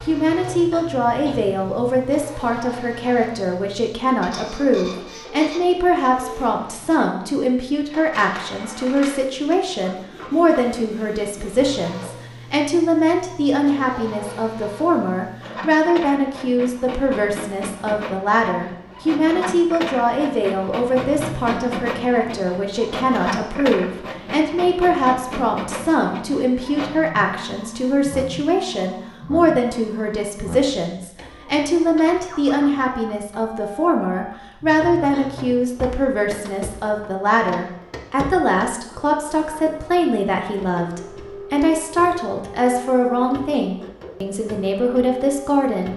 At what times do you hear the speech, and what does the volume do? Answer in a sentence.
The speech can be heard from 0.1 to 45.9 s, at a steady volume.